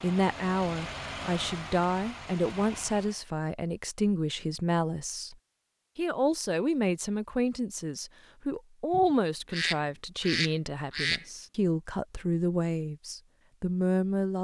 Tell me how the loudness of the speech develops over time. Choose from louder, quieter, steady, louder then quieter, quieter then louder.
steady.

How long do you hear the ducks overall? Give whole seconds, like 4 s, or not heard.
2 s.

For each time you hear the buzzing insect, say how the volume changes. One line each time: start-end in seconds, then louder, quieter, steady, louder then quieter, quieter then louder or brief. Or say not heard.
not heard.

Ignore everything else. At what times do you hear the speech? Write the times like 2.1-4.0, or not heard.
0.0-5.3, 6.0-14.3.